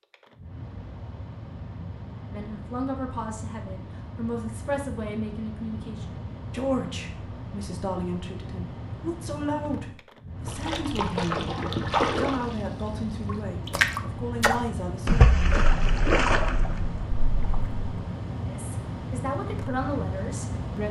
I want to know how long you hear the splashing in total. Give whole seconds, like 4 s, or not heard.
7 s.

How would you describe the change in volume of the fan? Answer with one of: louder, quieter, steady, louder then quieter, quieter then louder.
louder.